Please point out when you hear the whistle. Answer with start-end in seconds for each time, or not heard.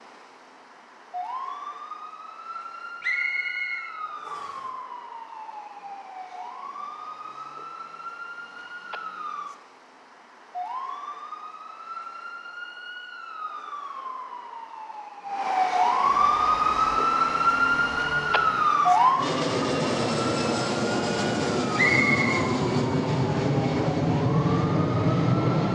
3.0-4.6, 21.8-22.4.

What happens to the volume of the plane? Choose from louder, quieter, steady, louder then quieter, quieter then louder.
louder.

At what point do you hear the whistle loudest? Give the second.
22 s.